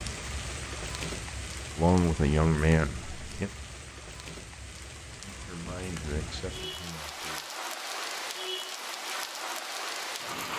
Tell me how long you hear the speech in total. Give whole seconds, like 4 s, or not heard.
4 s.